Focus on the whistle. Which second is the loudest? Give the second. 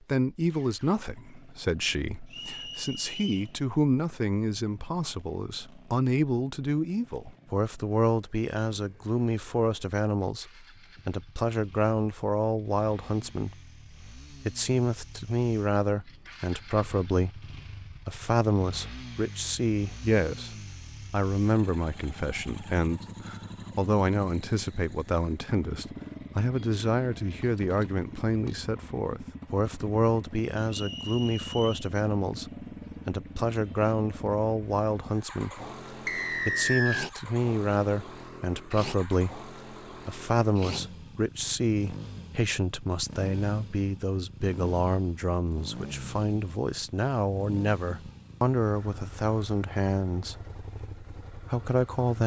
37 s.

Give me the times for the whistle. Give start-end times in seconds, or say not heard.
2.3-3.5, 30.6-31.9, 36.0-37.1.